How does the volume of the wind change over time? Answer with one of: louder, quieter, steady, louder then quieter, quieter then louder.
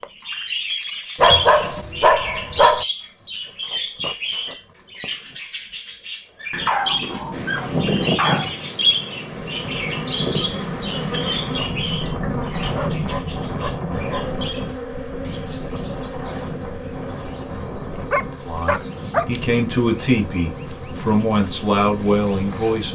quieter.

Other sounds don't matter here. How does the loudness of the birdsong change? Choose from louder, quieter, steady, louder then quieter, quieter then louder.
quieter.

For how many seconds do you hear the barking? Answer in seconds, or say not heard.
7 s.